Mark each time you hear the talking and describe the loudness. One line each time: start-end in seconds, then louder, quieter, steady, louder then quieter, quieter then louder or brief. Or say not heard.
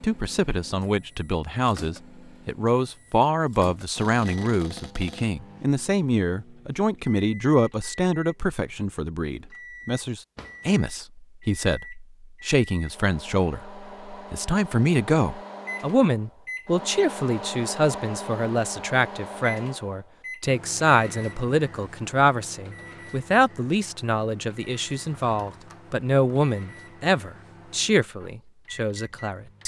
0.0-29.6 steady.